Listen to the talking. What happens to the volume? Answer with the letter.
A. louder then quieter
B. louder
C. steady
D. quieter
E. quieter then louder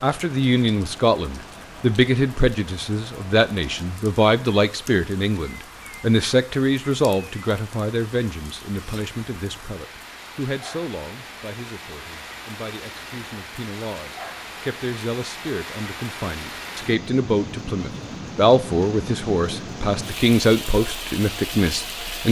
E.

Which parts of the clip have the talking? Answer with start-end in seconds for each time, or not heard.
0.0-22.2.